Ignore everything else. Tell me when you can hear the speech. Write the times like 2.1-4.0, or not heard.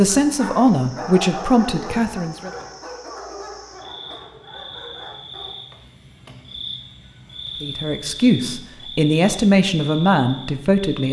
0.0-2.5, 7.6-11.0.